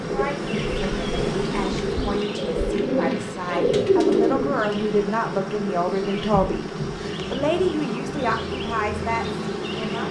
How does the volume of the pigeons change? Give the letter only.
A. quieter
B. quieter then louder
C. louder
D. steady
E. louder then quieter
C.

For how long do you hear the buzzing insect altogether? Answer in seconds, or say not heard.
10 s.